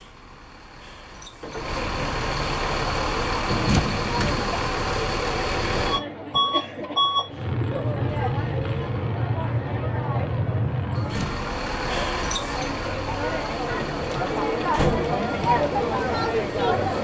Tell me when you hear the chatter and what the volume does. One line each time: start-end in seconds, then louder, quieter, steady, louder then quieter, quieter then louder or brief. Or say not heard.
2.8-17.0 louder.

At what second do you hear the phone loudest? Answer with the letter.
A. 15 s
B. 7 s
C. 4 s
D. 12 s
C.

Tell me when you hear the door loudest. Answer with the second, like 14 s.
15 s.